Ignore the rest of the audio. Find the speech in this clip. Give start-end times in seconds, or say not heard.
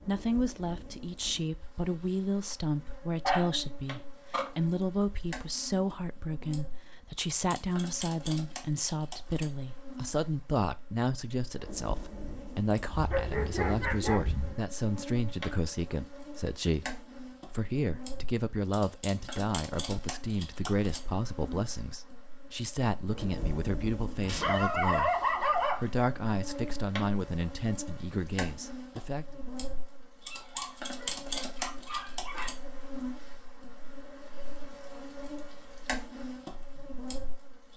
0.0-29.2.